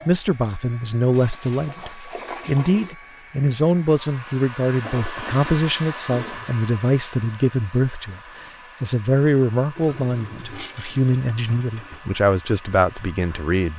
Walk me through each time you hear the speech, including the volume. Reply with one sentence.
You can hear the speech from 0.1 to 13.7 s, at a steady volume.